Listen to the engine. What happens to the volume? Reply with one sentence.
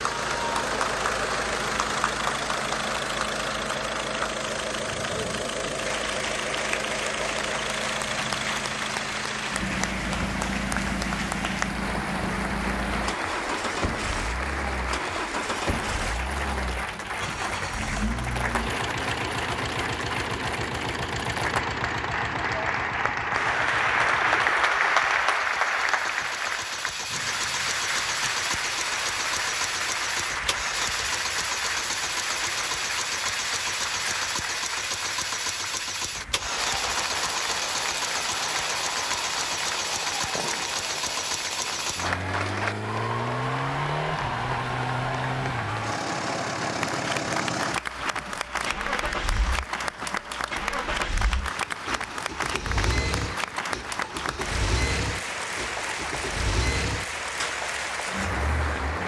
The volume of the engine stays about the same.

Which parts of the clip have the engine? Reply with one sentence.
The engine can be heard from 0.0 to 59.0 s.